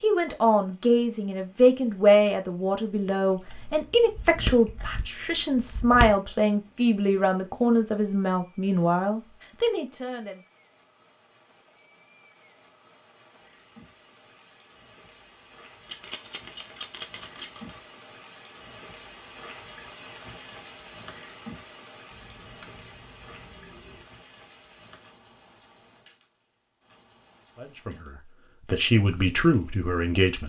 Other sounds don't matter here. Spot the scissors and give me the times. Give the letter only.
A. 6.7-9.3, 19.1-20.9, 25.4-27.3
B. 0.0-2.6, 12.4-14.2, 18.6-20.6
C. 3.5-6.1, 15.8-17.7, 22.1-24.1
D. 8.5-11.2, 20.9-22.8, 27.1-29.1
C.